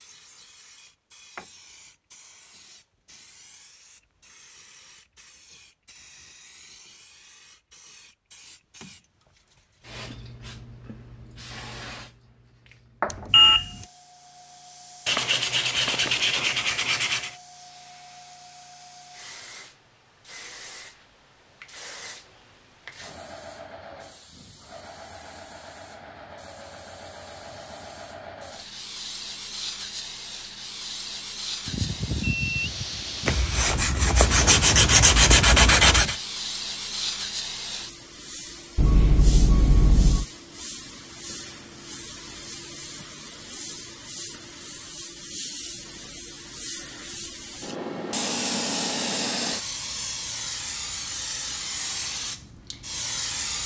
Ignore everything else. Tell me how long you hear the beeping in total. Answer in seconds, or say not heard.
4 s.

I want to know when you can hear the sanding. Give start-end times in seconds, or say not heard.
15.1-17.4, 33.2-36.2.